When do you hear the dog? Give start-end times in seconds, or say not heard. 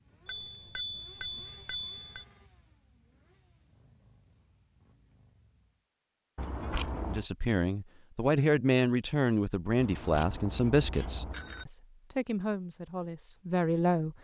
not heard.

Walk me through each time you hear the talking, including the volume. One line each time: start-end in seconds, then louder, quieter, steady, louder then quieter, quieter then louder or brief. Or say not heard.
7.0-14.1 quieter.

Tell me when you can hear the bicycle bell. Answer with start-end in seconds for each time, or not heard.
0.2-2.2, 6.3-7.2, 9.8-11.7.